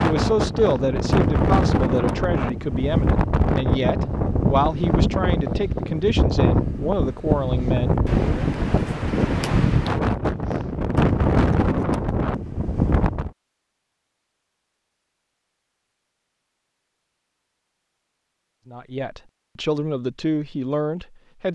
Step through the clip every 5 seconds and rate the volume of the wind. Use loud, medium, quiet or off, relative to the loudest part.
loud, loud, loud, off, off.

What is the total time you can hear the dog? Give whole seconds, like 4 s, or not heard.
not heard.